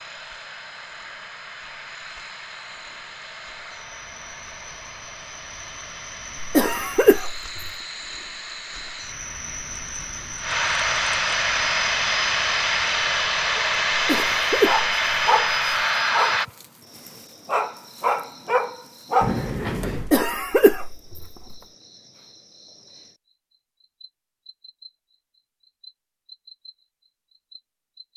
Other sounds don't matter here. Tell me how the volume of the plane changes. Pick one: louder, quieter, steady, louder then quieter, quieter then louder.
louder.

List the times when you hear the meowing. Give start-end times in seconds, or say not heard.
19.2-20.2.